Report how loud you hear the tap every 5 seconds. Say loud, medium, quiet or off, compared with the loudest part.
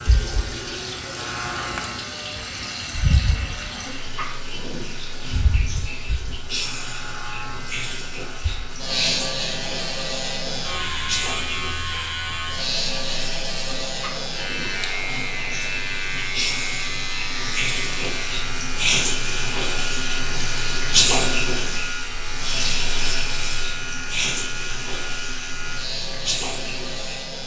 medium, medium, medium, loud, loud, medium.